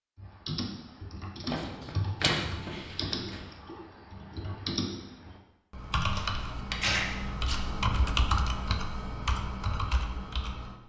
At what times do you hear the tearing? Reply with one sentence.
The tearing can be heard from 1.4 to 3.4 s and from 6.1 to 7.6 s.